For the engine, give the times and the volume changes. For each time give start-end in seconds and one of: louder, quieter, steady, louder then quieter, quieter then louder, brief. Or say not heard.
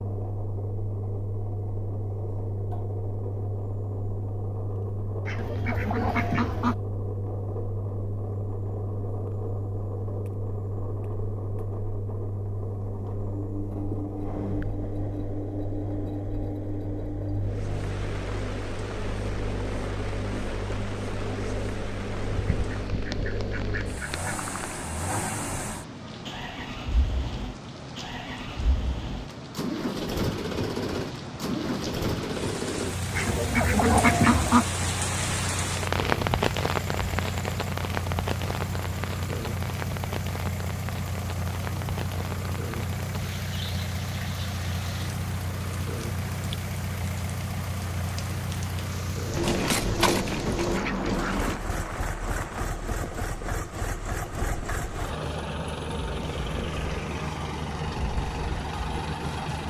0.0-59.6 steady.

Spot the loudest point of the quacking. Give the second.
34 s.